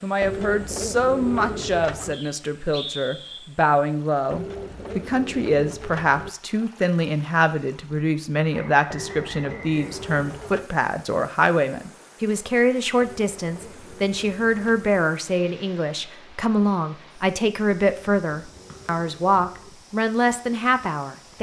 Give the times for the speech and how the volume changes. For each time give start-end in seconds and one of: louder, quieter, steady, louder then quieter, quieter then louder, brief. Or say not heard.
0.0-21.3 steady.